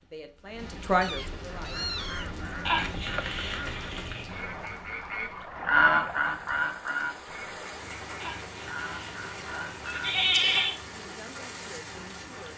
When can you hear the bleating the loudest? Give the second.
10 s.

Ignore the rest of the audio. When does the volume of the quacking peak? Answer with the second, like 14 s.
6 s.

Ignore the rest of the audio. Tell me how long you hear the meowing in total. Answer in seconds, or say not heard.
3 s.